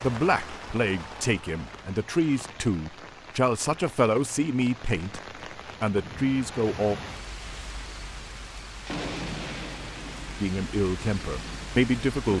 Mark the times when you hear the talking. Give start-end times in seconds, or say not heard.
0.0-5.2, 5.8-7.0, 10.4-12.3.